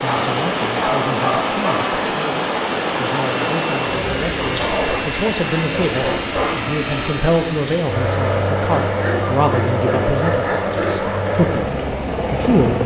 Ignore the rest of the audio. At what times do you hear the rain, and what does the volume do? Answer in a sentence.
You can hear the rain from 0.0 to 12.8 s, getting quieter.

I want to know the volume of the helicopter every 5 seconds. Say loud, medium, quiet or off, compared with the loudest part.
medium, loud, loud.